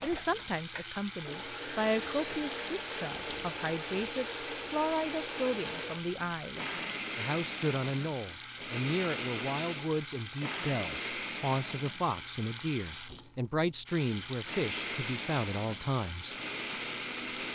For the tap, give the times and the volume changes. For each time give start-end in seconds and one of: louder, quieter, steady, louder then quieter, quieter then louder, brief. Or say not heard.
0.0-17.5 steady.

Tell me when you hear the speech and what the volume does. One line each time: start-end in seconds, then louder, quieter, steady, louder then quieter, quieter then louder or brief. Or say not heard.
0.0-16.4 steady.